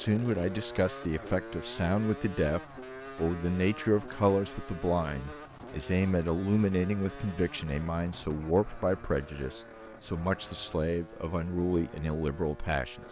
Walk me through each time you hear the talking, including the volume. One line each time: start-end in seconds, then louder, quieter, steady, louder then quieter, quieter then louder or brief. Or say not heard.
0.0-13.0 steady.